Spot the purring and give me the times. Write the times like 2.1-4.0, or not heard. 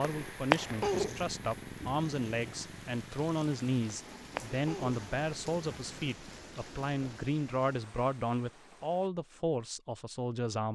0.0-6.2.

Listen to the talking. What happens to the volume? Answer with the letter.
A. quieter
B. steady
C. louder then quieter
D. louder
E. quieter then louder
B.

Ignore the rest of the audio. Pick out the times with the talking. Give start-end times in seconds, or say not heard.
0.0-10.7.